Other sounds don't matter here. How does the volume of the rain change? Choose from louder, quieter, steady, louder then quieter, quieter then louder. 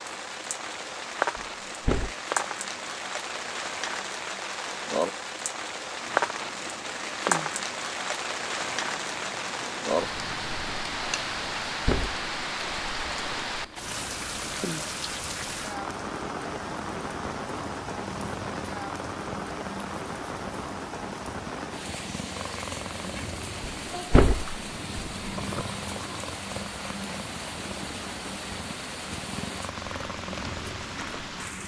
quieter.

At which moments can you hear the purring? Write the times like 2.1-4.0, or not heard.
6.0-31.6.